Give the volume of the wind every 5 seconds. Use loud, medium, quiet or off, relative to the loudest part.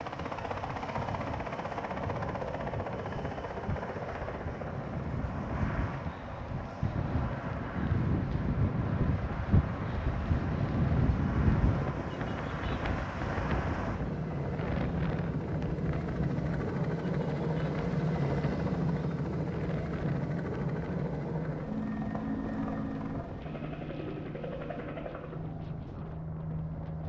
medium, loud, loud, medium, quiet, quiet.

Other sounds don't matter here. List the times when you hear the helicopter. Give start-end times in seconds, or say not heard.
0.0-27.0.